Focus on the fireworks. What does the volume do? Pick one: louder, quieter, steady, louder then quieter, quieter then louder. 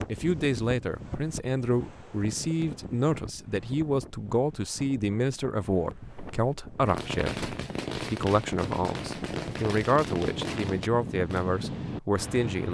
steady.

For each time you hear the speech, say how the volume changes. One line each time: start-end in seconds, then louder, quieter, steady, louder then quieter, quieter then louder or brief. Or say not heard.
0.1-12.6 steady.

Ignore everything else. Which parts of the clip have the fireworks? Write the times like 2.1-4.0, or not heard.
6.0-11.5.